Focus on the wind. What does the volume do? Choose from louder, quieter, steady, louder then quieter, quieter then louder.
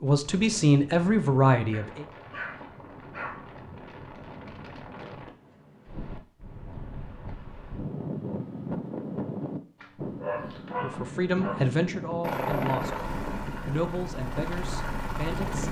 louder.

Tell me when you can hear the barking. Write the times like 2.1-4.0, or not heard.
1.7-3.5, 9.8-11.6.